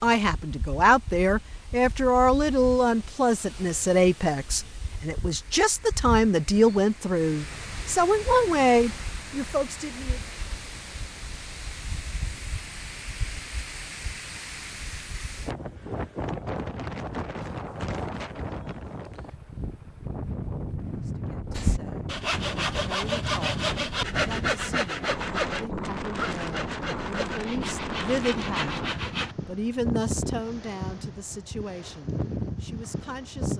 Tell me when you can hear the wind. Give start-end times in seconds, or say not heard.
0.0-33.5.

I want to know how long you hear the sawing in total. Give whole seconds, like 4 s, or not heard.
8 s.